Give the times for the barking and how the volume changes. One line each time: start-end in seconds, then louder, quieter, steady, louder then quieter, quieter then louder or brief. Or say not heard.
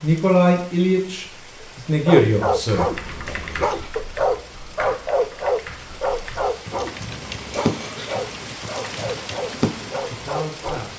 1.6-10.9 quieter.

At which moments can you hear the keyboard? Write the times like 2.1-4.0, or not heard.
2.6-10.2.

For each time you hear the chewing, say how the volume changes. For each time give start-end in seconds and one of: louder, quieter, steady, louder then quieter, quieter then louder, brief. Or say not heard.
not heard.